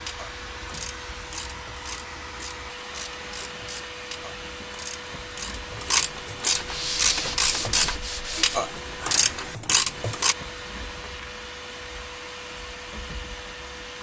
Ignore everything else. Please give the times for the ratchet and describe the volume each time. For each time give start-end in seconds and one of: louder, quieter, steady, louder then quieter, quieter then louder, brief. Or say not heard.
0.0-10.3 louder.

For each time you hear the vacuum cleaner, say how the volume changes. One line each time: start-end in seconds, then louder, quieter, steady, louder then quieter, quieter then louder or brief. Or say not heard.
0.0-13.9 steady.